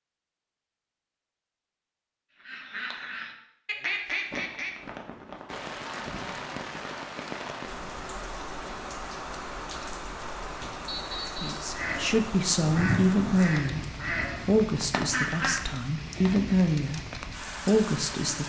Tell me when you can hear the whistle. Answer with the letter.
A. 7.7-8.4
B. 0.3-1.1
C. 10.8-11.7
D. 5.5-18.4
C.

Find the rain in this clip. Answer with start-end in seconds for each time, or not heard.
5.5-18.4.